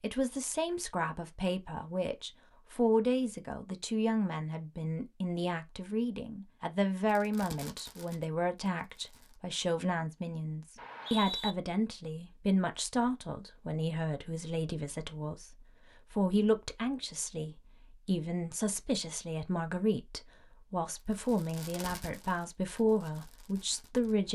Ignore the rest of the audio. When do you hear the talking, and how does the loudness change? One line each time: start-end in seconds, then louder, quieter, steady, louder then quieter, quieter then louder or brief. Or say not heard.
0.0-24.2 steady.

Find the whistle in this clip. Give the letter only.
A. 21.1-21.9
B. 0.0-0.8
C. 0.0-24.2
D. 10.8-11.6
D.